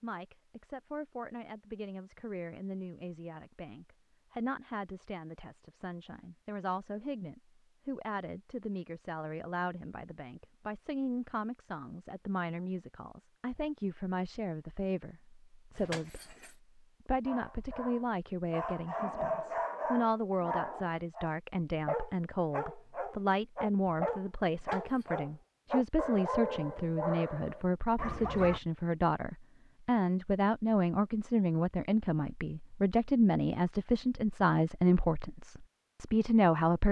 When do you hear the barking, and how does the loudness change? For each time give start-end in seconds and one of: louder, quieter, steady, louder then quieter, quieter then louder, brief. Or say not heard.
17.2-28.6 steady.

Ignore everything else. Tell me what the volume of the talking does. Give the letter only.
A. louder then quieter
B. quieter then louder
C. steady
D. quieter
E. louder
E.